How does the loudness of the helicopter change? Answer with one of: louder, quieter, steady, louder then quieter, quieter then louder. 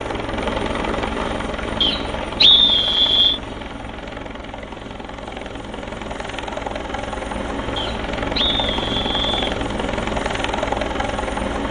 quieter then louder.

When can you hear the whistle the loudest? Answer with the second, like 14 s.
3 s.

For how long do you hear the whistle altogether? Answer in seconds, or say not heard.
3 s.